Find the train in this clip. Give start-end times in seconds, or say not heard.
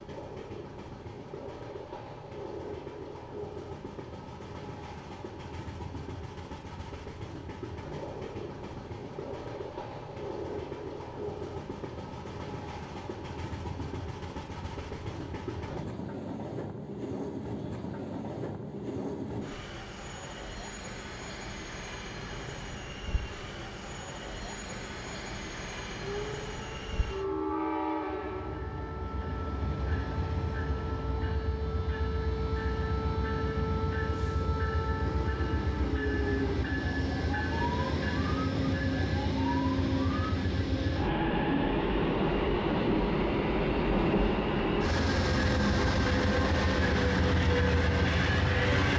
0.0-48.9.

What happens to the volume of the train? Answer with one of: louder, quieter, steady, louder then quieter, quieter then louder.
louder.